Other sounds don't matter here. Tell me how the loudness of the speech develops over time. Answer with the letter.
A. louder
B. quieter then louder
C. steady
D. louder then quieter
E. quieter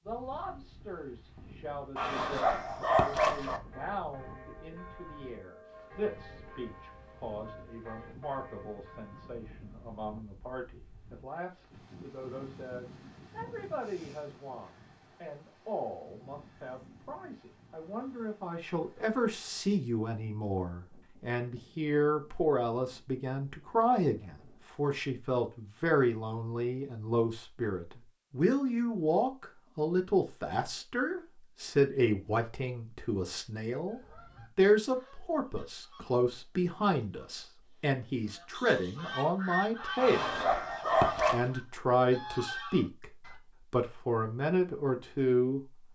A.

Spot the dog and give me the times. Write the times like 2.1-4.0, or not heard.
1.9-3.6, 40.0-41.5.